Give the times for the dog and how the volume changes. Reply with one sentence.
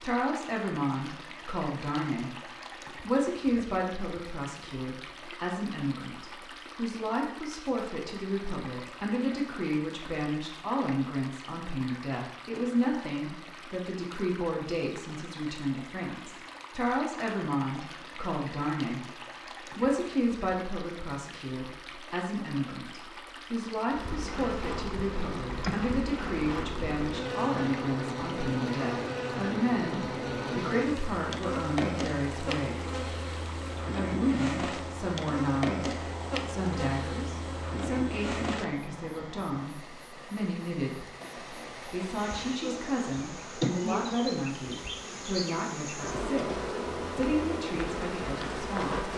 You can't hear the dog here.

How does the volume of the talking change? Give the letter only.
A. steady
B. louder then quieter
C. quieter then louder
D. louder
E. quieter
A.